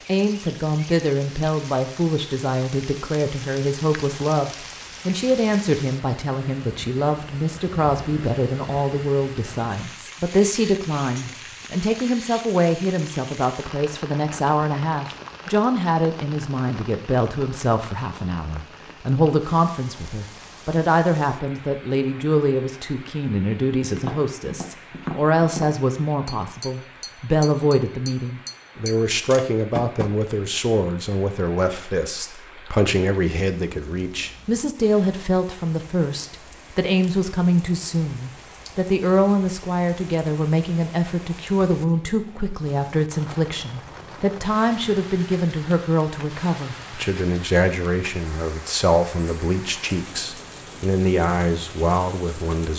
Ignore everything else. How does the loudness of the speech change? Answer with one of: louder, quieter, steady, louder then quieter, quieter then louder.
steady.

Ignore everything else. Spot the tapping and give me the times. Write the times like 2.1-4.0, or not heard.
23.9-30.1.